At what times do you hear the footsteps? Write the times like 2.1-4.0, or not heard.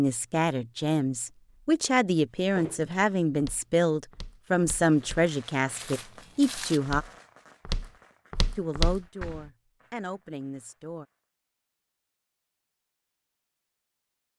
2.5-9.4.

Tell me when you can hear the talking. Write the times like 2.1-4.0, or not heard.
0.0-7.0, 8.6-11.1.